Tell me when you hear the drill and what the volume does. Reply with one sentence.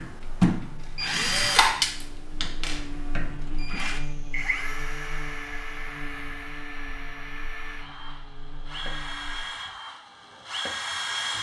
You can hear the drill from 0.0 to 11.3 s, getting quieter then louder.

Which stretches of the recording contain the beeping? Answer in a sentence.
The beeping can't be heard in this clip.